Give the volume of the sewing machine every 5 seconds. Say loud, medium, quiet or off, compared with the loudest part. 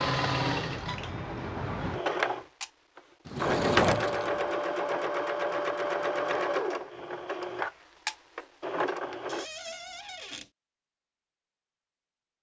loud, loud, off.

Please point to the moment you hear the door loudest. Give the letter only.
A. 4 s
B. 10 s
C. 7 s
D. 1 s
A.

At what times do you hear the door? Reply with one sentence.
You can hear the door from 3.2 to 4.4 s and from 9.2 to 10.5 s.